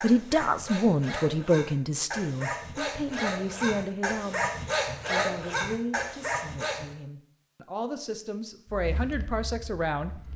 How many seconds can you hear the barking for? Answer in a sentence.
You can hear the barking for 7 seconds altogether.